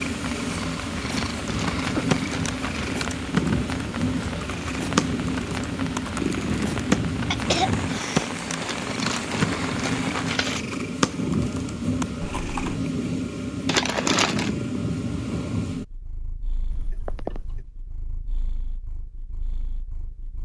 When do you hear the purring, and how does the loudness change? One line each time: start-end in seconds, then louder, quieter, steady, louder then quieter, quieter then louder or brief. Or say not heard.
0.0-20.3 quieter.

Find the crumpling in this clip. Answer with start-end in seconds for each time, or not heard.
1.2-2.9, 8.6-10.7, 13.7-14.5.